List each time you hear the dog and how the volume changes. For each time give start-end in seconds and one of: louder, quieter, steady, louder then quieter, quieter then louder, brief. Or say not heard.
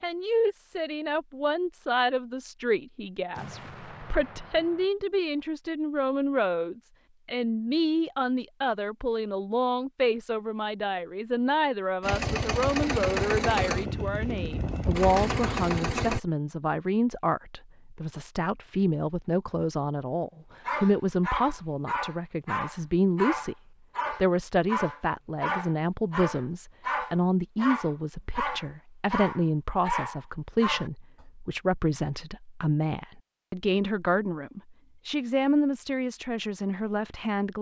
20.6-31.2 steady.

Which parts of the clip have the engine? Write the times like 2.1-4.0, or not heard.
12.0-16.2.